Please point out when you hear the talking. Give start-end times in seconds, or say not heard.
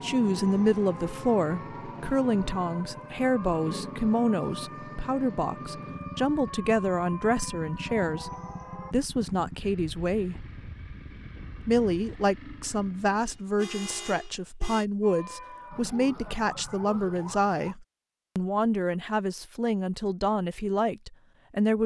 0.0-8.3, 8.9-10.6, 11.6-21.8.